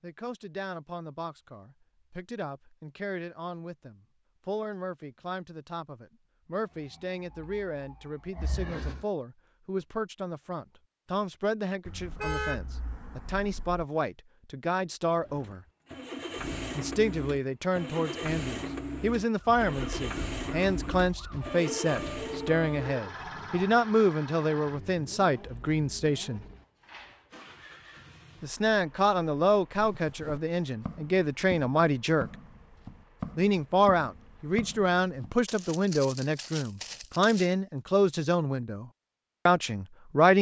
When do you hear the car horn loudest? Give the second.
12 s.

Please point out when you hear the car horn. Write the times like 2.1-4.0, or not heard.
11.8-13.8.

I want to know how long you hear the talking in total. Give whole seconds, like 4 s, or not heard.
36 s.